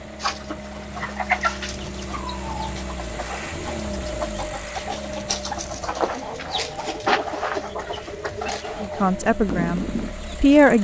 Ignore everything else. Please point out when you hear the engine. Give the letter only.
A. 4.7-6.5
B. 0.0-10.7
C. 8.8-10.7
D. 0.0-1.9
B.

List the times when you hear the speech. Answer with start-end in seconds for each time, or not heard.
8.8-10.7.